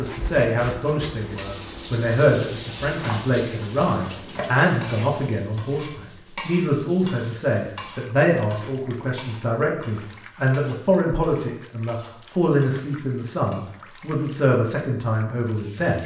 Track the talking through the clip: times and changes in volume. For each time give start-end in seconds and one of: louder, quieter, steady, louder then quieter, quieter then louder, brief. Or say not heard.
0.0-16.0 steady.